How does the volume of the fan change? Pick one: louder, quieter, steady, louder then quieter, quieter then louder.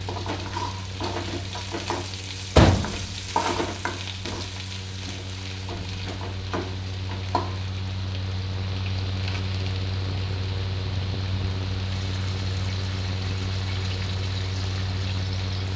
louder.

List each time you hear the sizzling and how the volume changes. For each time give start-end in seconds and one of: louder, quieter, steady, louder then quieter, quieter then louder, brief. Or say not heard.
0.0-15.7 quieter.